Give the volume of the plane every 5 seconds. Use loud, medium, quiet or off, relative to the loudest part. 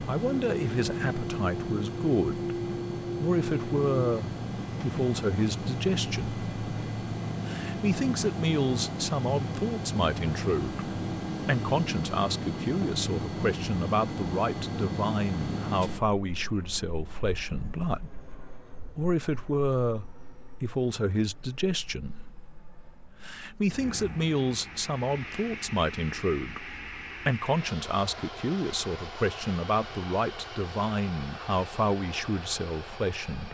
loud, loud, loud, medium, quiet, medium, medium.